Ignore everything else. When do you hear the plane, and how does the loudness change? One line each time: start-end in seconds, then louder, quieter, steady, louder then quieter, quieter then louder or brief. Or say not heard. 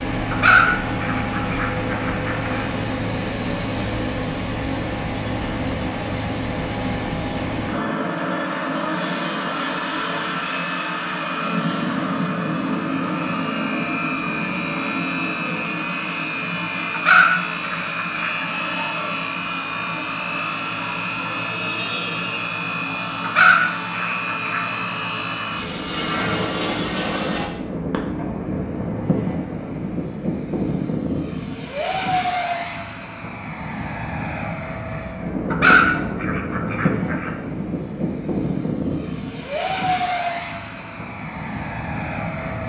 0.0-42.6 steady.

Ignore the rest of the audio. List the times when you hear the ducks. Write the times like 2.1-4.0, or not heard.
0.3-2.6, 16.9-18.3, 23.2-24.6, 35.5-37.3.